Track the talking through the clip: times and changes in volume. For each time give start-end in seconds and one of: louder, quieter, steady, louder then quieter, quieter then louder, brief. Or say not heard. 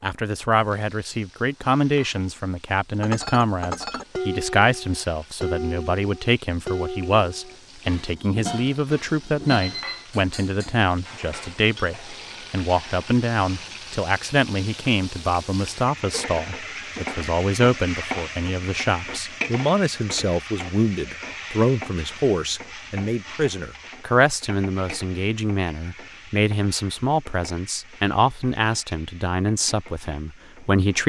0.0-31.0 steady.